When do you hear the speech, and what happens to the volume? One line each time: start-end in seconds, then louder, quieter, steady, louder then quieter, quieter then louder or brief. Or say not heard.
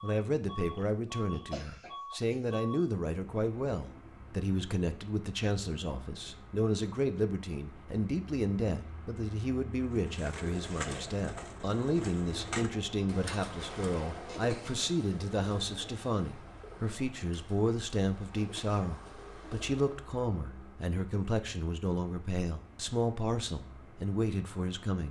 0.0-25.0 steady.